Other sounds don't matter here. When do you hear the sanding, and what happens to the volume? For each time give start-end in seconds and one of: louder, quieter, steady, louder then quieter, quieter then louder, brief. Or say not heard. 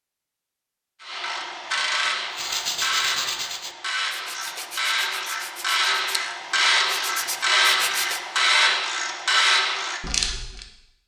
2.3-8.2 quieter then louder.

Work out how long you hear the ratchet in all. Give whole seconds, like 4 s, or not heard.
10 s.